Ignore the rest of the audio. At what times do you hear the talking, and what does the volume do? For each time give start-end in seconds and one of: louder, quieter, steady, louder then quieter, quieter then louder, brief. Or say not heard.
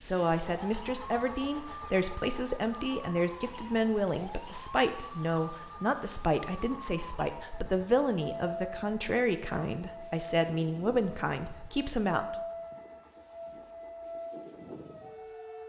0.0-12.3 steady.